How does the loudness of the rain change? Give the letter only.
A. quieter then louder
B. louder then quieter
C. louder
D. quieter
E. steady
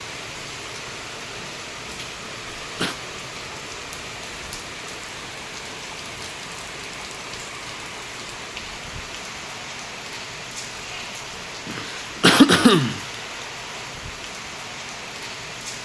E.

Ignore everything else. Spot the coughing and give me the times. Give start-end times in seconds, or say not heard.
2.2-3.0, 11.7-13.0.